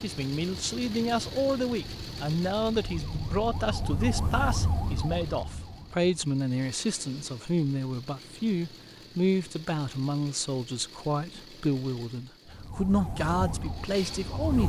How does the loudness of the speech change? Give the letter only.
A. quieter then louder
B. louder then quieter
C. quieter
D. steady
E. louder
D.